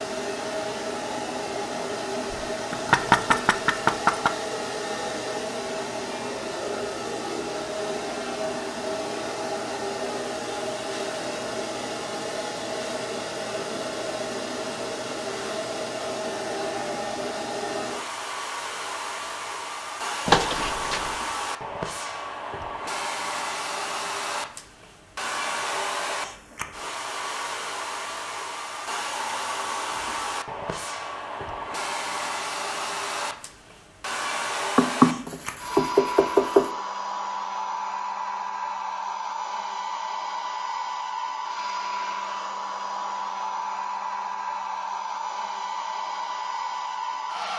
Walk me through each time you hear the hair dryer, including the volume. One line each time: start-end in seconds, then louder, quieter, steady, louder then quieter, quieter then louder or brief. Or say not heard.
0.0-47.5 steady.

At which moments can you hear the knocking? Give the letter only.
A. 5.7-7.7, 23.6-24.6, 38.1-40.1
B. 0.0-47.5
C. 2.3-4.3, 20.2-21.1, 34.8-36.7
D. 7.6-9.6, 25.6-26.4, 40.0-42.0
C.